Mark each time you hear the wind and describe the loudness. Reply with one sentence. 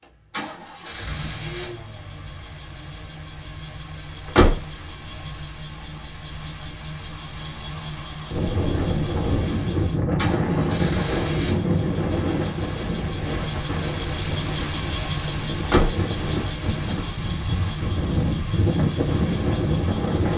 The wind can be heard from 8.3 to 20.3 s, getting quieter then louder.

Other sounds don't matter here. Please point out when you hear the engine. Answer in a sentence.
The engine can be heard from 0.0 to 20.3 s.